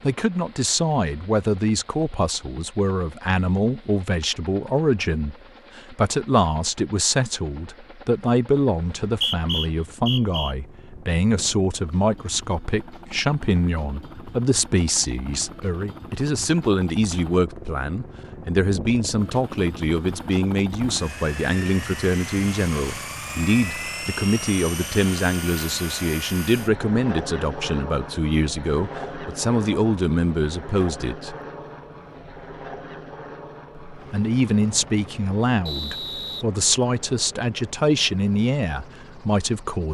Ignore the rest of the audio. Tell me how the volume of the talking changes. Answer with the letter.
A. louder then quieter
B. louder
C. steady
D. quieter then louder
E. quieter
C.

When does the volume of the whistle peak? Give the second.
9 s.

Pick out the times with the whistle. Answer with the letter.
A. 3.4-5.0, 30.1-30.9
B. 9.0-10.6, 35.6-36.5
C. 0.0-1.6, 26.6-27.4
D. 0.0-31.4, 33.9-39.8
B.